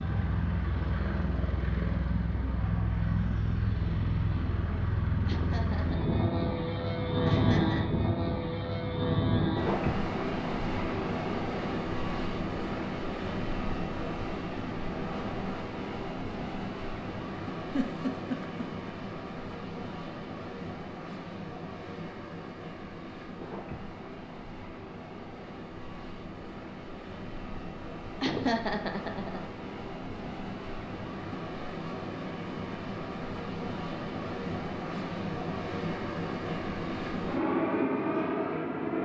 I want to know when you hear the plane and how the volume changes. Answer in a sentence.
The plane can be heard from 0.0 to 39.0 s, getting quieter then louder.